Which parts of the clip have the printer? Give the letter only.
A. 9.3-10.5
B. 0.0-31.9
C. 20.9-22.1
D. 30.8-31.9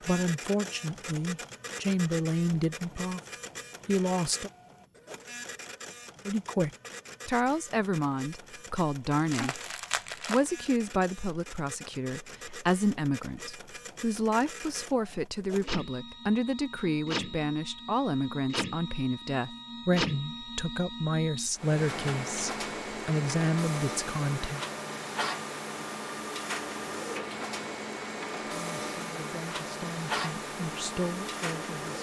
B.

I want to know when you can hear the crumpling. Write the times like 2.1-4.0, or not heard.
9.3-10.5.